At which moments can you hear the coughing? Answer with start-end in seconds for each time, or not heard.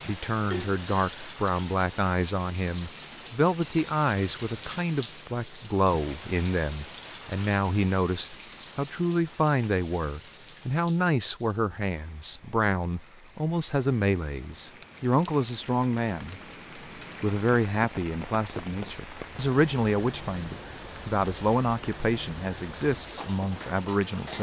0.5-1.3.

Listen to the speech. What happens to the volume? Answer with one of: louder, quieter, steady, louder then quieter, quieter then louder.
steady.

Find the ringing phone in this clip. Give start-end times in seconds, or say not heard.
not heard.